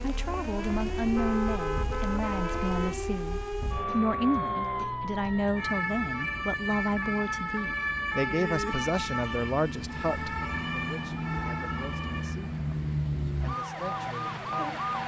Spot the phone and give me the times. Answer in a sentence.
You can't hear the phone here.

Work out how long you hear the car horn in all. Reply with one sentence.
The car horn can be heard for 2 seconds in total.